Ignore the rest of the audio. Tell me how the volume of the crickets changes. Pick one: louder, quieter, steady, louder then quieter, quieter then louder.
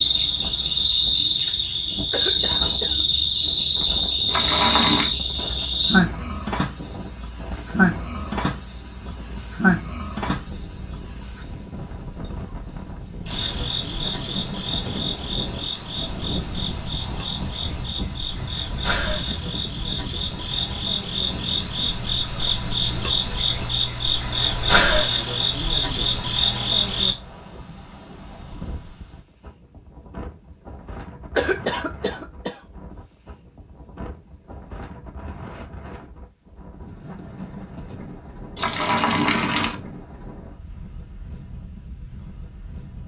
quieter then louder.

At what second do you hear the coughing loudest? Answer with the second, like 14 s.
32 s.